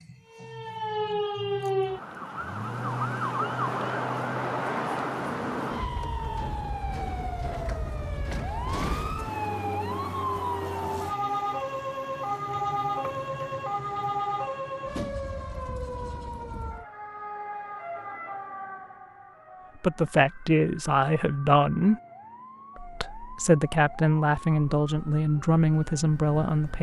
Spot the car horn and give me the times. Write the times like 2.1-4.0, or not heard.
not heard.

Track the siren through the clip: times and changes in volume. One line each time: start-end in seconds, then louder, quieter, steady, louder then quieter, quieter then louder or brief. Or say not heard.
0.0-26.7 quieter.